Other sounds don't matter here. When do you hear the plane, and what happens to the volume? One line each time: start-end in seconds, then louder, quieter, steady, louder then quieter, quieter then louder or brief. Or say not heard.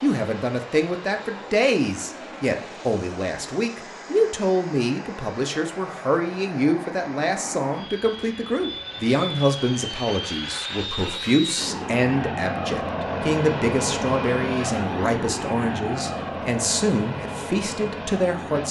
0.0-18.6 louder.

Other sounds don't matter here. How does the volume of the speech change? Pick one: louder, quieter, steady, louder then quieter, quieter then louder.
steady.